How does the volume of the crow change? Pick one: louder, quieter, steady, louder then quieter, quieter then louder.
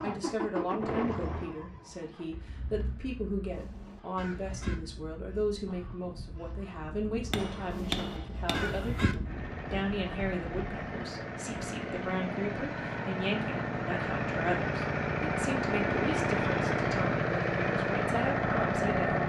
quieter then louder.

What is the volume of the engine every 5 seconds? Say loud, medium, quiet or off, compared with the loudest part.
medium, quiet, medium, loud.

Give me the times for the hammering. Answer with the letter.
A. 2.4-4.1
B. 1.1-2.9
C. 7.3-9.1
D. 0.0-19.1
C.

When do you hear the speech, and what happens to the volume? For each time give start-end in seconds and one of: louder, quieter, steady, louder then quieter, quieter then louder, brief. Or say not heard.
0.0-19.1 steady.